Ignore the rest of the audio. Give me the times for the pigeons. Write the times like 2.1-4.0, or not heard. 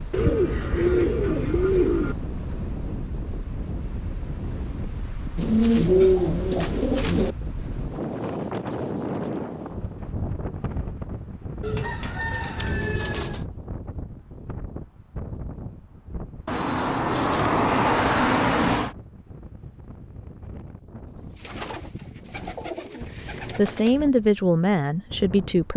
0.1-2.1, 5.3-7.3, 11.6-13.4, 16.4-18.9, 21.4-24.0.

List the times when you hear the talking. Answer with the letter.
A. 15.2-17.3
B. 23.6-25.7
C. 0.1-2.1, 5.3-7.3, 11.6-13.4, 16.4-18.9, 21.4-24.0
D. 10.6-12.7
B.